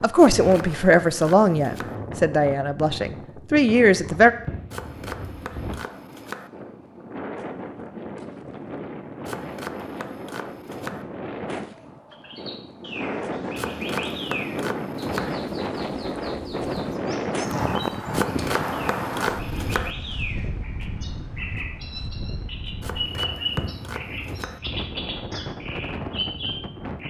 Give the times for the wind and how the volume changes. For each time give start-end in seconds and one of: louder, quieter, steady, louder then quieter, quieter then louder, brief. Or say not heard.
0.0-27.0 louder then quieter.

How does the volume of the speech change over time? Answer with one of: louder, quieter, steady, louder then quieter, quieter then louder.
quieter then louder.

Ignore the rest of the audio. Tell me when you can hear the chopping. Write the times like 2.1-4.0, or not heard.
0.1-1.9, 4.7-6.5, 9.2-11.1, 13.6-15.3, 18.1-19.9, 22.8-24.6.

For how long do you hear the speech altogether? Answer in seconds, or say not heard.
4 s.